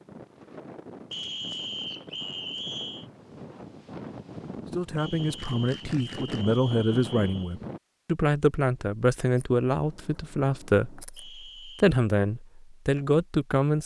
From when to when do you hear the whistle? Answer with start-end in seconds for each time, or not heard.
1.1-3.0, 5.0-7.5, 11.2-11.8.